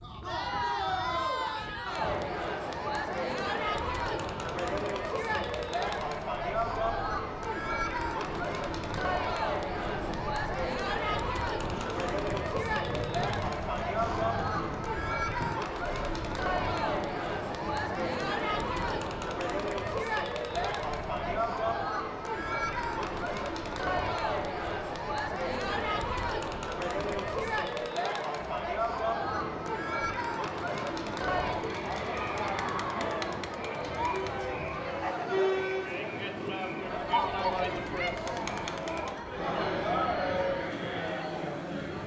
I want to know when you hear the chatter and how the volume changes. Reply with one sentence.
You can hear the chatter from 0.0 to 42.0 s, at a steady volume.